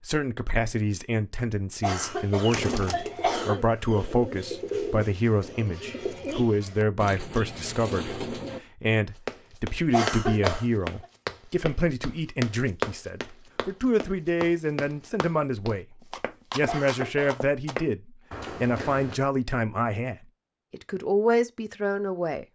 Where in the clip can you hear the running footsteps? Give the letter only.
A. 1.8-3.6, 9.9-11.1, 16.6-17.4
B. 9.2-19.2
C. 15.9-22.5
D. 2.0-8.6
B.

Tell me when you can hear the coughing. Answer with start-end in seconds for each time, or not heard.
1.8-3.6, 9.9-11.1, 16.6-17.4.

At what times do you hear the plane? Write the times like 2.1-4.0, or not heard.
not heard.